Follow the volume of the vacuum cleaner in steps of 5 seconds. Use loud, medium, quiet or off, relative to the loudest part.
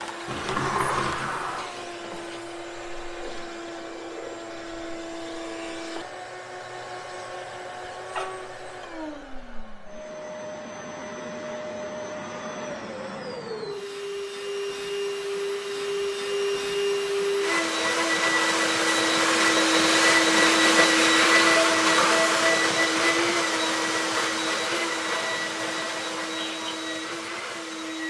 quiet, quiet, quiet, loud, loud, medium.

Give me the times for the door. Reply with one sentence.
You can hear the door from 0.2 to 1.8 s.